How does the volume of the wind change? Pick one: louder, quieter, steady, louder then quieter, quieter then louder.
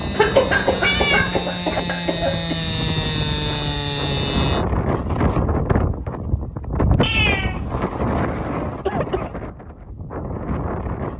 louder then quieter.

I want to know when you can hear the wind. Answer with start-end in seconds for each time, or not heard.
0.0-11.1.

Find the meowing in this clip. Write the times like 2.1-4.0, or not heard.
0.8-1.4, 7.0-7.7.